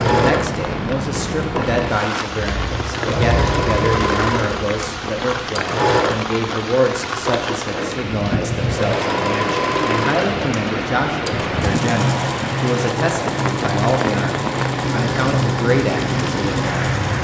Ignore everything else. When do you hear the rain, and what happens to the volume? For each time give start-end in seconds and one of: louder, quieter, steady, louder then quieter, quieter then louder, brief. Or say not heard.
0.0-17.1 steady.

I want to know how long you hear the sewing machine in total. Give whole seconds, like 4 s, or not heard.
17 s.